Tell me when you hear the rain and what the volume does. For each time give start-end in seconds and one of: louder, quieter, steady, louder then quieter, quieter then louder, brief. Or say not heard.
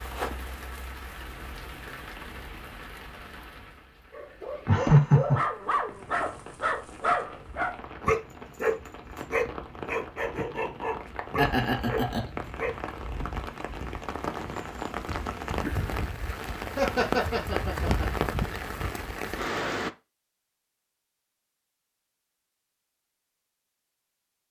0.0-19.9 louder.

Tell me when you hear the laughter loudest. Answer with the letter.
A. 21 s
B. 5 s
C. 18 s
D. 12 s
B.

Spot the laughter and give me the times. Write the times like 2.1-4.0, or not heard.
4.7-5.4, 11.3-12.2, 16.8-18.1.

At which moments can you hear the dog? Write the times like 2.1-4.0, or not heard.
4.1-12.8.